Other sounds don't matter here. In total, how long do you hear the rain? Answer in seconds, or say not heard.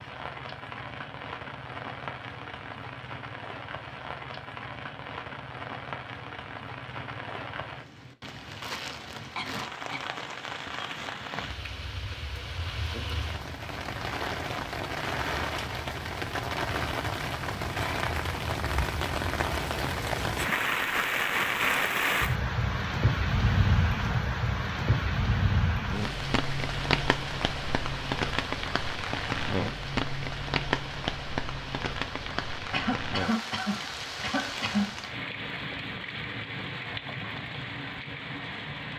39 s.